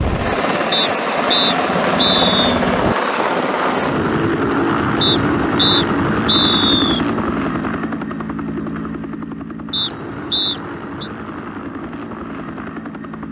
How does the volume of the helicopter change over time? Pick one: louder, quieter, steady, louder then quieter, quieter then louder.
quieter.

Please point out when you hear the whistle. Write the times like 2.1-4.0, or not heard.
0.7-2.5, 5.0-7.0, 9.7-11.1.